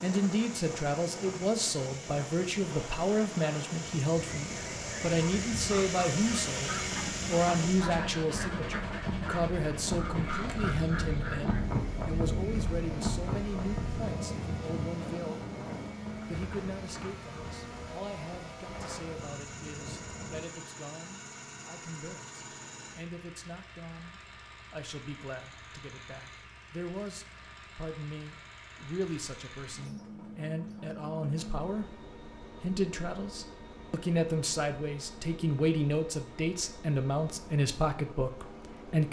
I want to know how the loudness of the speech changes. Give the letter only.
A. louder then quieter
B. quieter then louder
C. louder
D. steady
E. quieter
B.